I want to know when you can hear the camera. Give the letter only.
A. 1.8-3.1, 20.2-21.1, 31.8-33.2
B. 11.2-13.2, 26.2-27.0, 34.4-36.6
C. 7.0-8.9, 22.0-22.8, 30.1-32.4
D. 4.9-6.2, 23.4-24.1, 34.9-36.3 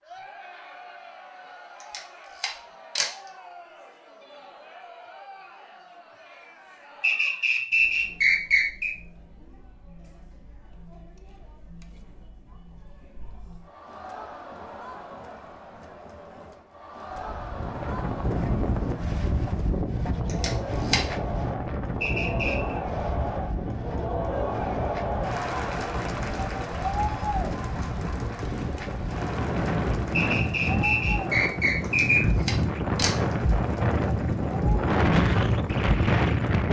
A.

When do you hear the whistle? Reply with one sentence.
You can hear the whistle from 7.0 to 8.9 s, from 22.0 to 22.8 s and from 30.1 to 32.4 s.